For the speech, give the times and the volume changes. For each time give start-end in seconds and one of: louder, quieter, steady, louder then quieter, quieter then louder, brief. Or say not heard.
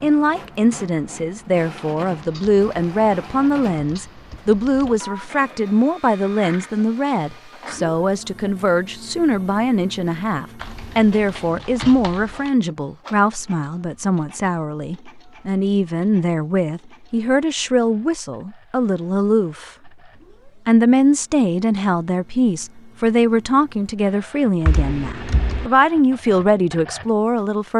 0.0-19.9 steady
20.6-27.7 steady.